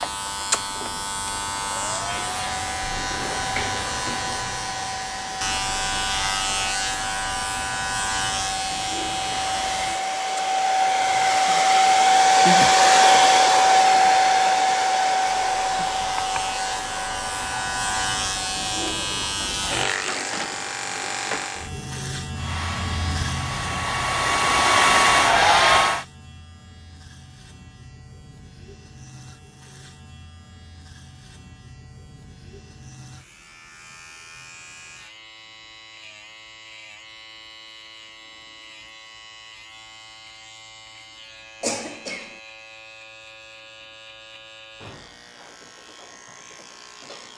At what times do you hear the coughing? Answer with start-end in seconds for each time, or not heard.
41.6-42.4.